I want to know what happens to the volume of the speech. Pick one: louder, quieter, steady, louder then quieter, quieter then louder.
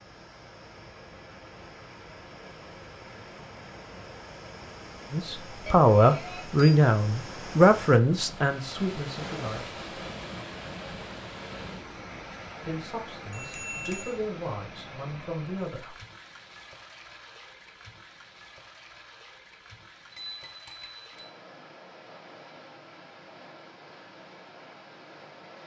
quieter.